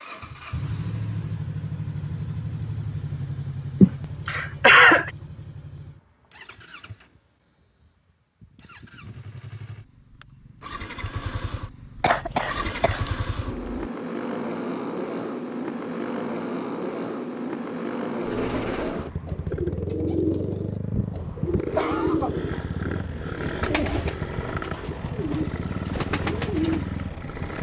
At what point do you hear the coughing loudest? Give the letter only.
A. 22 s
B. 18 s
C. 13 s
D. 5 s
D.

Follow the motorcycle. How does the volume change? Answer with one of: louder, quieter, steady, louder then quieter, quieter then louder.
quieter then louder.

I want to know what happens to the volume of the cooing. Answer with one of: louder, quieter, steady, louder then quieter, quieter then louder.
steady.